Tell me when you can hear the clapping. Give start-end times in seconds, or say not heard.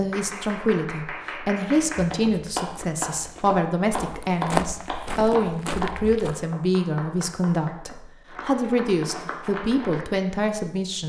0.1-10.1.